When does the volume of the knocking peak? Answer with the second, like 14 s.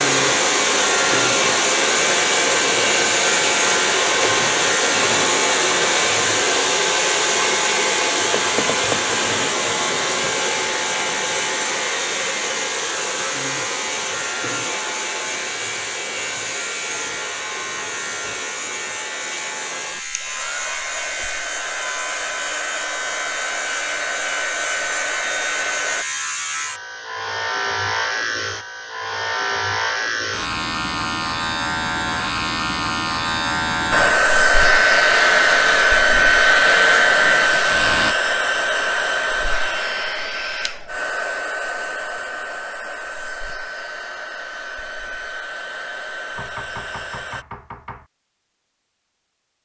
9 s.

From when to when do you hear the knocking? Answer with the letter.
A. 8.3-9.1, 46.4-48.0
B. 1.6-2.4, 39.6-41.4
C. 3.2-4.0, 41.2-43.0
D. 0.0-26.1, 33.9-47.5
A.